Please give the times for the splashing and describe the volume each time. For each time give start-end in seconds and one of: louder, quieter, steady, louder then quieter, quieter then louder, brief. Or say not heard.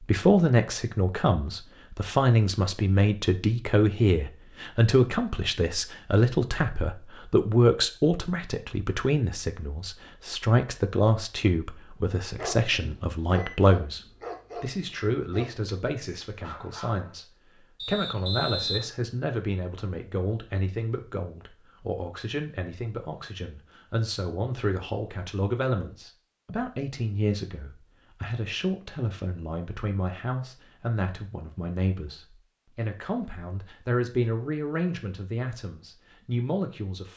not heard.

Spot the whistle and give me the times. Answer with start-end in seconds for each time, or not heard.
17.8-18.9.